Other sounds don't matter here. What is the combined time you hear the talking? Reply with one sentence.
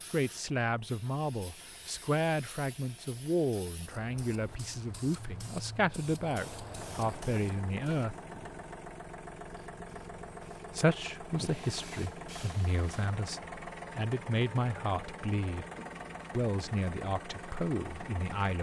The talking can be heard for 15 seconds in total.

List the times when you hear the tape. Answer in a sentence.
You can't hear the tape here.